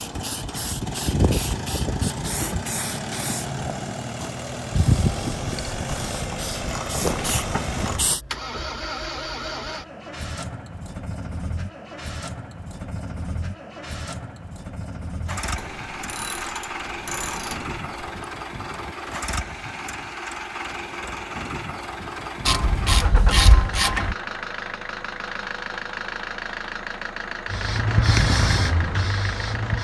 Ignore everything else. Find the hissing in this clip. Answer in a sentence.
The hissing can be heard from 0.0 to 8.2 s and from 27.4 to 29.7 s.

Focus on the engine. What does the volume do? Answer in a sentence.
The volume of the engine stays about the same.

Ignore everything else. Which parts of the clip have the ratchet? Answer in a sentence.
You can hear the ratchet from 5.3 to 8.1 s, from 15.6 to 18.2 s and from 22.4 to 24.1 s.